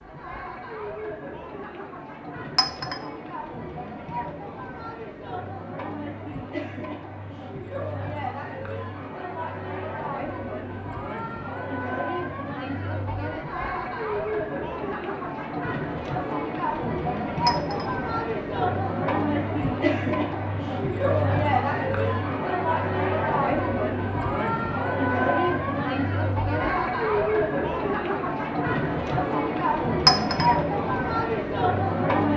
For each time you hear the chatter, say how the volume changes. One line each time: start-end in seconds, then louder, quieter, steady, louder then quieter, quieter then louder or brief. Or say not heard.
0.0-32.3 louder.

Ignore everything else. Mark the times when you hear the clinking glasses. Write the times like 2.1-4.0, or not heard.
2.5-3.0, 17.4-17.9, 30.1-30.5.